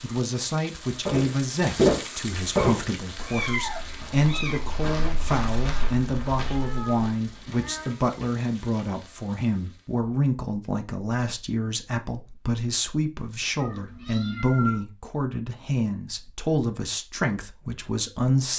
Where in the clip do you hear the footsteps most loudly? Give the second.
2 s.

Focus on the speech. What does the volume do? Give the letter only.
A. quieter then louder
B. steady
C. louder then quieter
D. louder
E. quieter
B.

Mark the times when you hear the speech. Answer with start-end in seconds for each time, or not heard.
0.0-18.5.